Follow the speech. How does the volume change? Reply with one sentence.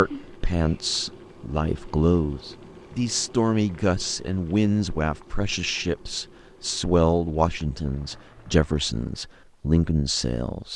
The volume of the speech stays about the same.